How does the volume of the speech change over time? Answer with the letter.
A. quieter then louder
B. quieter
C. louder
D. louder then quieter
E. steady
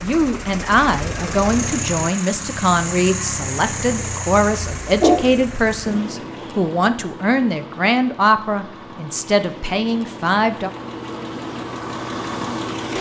E.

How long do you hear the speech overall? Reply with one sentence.
You can hear the speech for 11 seconds altogether.